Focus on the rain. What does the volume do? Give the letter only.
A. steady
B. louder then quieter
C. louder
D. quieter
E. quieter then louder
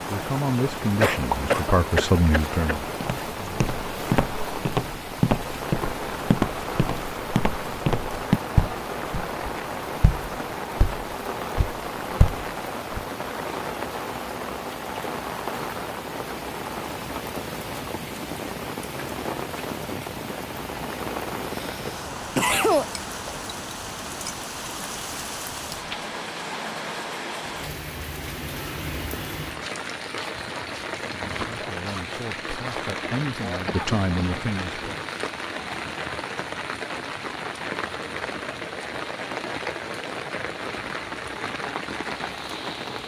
A.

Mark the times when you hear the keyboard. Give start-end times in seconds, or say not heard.
not heard.